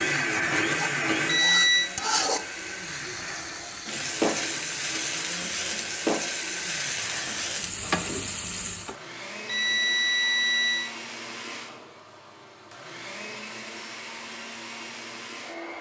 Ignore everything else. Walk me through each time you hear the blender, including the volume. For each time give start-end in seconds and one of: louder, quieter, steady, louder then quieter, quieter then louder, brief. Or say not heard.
0.0-15.7 quieter.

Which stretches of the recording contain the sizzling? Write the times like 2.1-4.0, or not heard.
0.0-8.9.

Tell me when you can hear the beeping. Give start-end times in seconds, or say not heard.
1.2-1.9, 9.4-10.9.